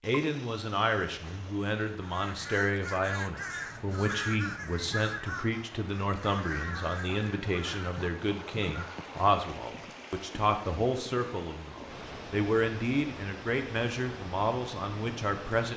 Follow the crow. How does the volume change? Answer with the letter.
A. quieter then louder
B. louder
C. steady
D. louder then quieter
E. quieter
E.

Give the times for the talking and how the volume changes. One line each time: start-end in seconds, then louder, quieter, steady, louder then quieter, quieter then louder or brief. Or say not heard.
0.0-15.7 steady.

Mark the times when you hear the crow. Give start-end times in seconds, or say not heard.
1.9-9.0.